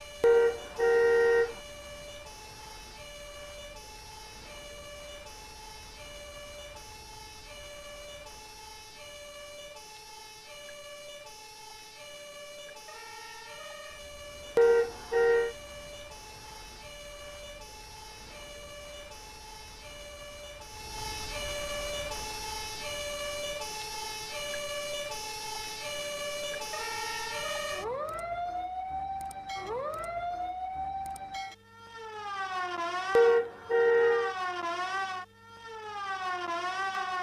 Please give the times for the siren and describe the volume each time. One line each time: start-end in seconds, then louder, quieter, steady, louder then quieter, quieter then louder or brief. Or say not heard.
0.0-37.1 louder.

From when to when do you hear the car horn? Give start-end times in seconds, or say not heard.
0.2-1.6, 14.6-15.6, 33.1-34.4.